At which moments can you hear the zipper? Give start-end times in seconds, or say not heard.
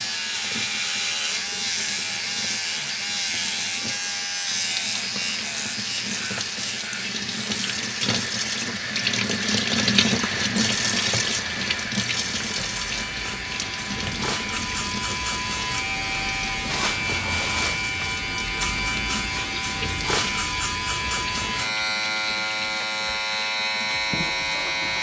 not heard.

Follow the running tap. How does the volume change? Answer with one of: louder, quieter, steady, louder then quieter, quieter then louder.
louder then quieter.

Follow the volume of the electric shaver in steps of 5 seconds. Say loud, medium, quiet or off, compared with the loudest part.
loud, medium, medium, loud, loud.